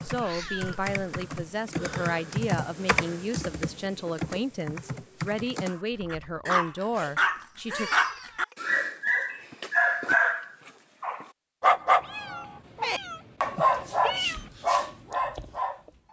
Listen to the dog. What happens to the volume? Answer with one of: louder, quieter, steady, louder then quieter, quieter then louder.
steady.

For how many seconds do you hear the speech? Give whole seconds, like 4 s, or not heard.
8 s.